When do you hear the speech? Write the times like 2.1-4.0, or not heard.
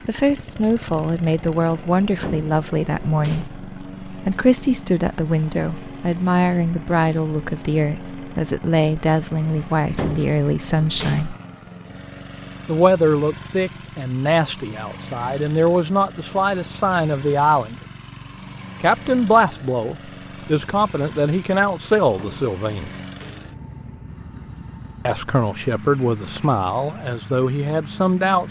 0.1-11.3, 12.7-17.8, 18.8-22.9, 25.1-28.4.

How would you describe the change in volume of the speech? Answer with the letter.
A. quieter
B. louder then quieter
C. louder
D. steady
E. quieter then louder
D.